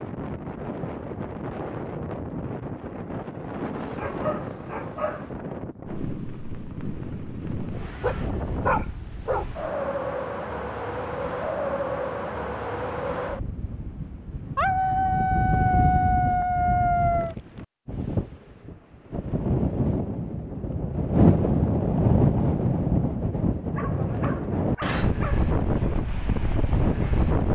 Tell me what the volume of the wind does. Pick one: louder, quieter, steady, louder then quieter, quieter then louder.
louder.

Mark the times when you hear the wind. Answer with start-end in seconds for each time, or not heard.
0.0-27.5.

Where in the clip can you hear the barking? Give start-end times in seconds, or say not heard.
3.8-5.3, 8.0-9.4, 14.6-17.4, 23.8-25.5.